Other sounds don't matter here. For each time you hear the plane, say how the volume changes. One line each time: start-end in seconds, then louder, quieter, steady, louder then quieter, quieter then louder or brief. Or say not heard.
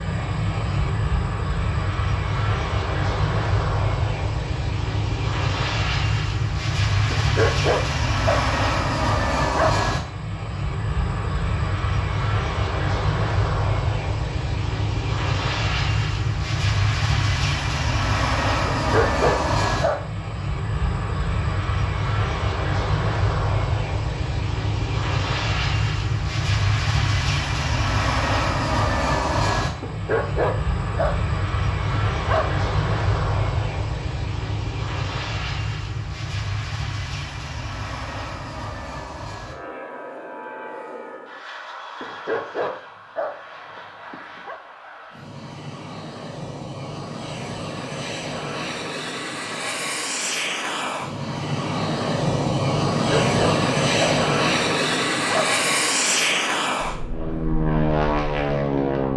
0.0-59.1 quieter then louder.